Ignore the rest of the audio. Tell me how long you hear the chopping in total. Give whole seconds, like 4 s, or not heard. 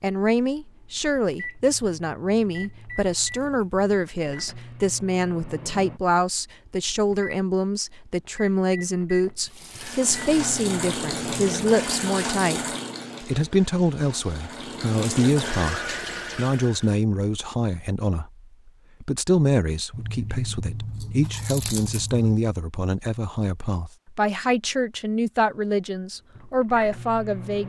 not heard.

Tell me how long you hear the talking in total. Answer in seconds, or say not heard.
27 s.